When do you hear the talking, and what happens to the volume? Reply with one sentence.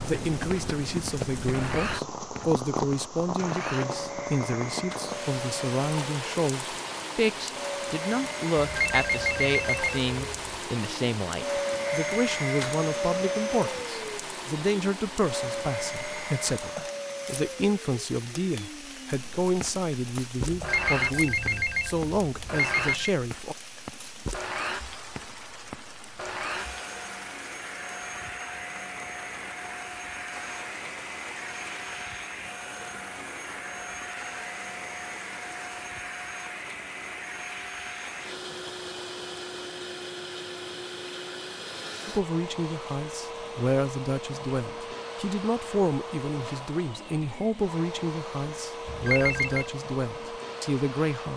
You can hear the talking from 0.0 to 23.6 s, at a steady volume; and from 42.0 to 51.3 s, at a steady volume.